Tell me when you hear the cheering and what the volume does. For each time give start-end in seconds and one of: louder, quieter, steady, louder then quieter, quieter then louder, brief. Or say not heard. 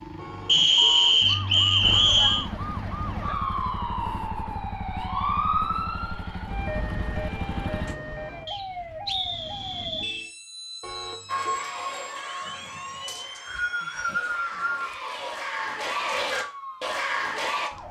11.2-17.7 quieter then louder.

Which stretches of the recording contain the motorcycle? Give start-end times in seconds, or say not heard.
1.8-8.0.